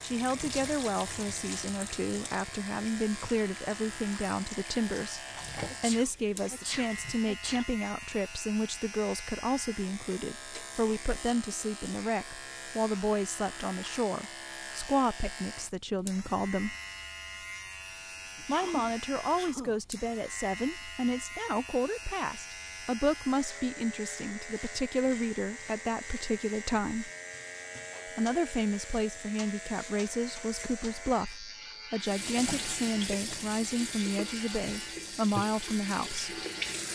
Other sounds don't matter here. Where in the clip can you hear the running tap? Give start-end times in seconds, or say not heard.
0.0-7.3, 32.0-36.8.